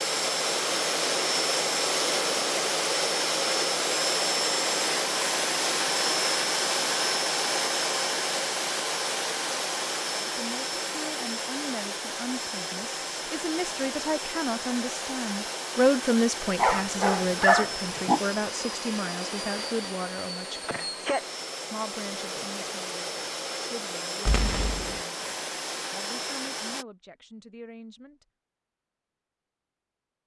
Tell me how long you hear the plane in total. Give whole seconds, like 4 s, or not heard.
27 s.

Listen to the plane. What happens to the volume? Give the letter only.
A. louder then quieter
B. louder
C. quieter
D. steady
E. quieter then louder
C.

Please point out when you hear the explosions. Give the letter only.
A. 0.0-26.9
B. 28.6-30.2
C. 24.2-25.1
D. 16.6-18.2
C.